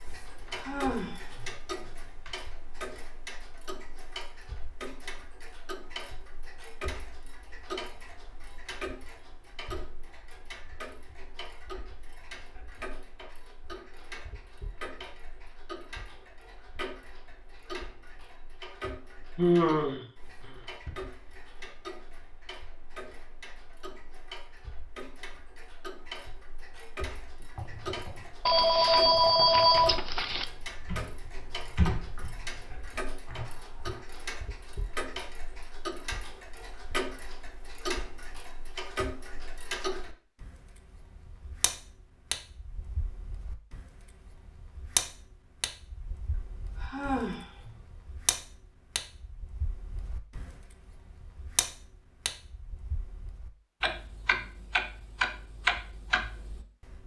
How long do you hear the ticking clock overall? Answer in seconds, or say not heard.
57 s.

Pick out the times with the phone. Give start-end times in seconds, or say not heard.
28.4-30.4.